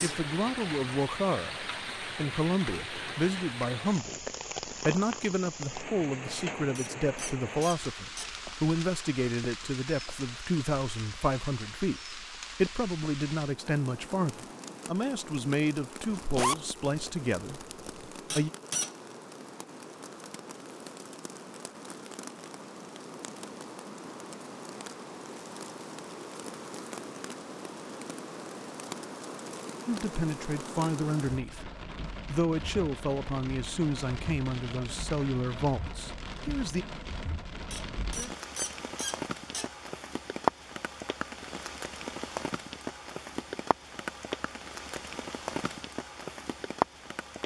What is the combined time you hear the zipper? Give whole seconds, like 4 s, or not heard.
2 s.